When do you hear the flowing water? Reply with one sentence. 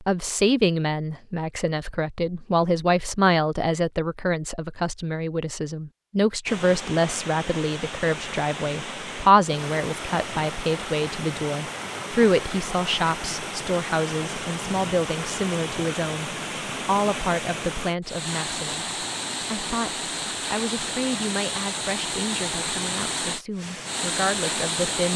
You can hear the flowing water from 6.5 to 25.1 s.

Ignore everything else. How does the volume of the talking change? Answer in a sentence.
The volume of the talking goes down.